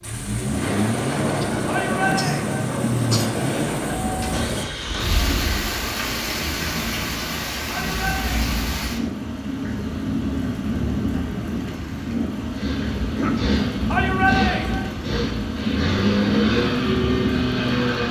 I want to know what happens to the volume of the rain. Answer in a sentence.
The loudness of the rain stays about the same.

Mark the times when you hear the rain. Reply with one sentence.
You can hear the rain from 0.0 to 18.0 s.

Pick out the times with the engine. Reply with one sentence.
You can hear the engine from 0.0 to 5.8 s and from 12.4 to 18.0 s.